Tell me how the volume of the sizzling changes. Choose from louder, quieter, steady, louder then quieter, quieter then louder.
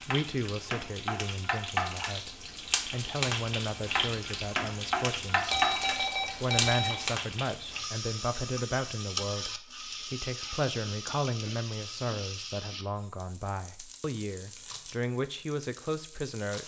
quieter.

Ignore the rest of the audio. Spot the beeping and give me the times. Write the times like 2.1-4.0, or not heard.
5.4-7.0.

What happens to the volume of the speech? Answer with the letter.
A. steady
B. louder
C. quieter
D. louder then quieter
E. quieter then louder
A.